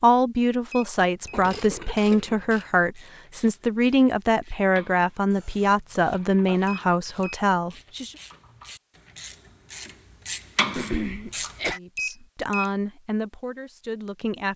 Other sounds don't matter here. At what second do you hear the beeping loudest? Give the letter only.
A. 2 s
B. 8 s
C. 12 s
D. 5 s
C.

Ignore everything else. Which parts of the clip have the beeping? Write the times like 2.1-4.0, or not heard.
0.7-1.4, 6.7-7.4, 11.9-12.7.